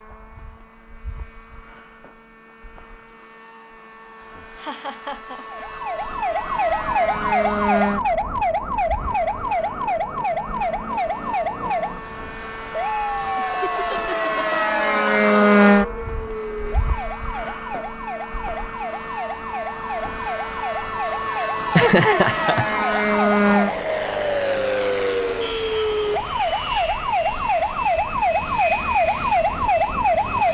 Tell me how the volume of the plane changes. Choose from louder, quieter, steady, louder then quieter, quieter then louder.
louder then quieter.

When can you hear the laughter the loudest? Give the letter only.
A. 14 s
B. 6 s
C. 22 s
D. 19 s
C.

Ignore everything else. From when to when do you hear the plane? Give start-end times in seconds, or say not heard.
0.0-30.4.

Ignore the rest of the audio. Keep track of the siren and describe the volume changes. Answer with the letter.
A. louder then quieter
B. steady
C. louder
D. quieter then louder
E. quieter
D.